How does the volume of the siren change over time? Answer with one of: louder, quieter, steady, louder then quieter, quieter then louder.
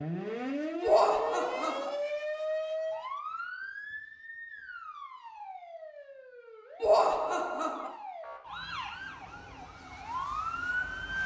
quieter then louder.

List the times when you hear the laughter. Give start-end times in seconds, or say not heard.
0.8-1.9, 6.8-7.9.